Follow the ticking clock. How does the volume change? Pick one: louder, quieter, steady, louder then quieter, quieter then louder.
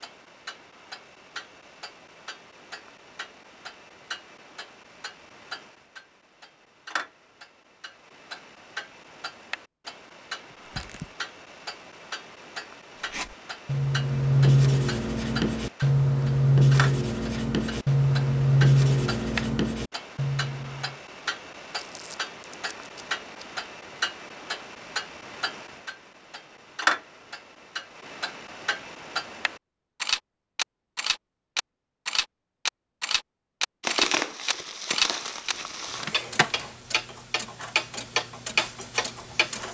louder.